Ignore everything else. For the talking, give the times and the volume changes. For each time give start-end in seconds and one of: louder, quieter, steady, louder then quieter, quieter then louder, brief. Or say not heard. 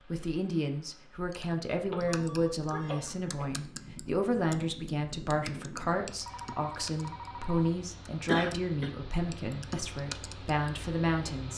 0.0-11.5 steady.